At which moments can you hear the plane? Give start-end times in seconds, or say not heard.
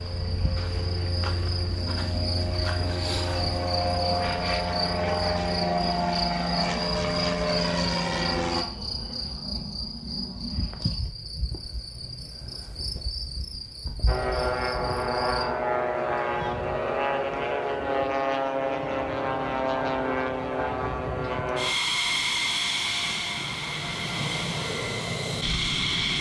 0.0-8.7, 14.1-26.1.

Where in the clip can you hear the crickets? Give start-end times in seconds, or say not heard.
0.0-15.4.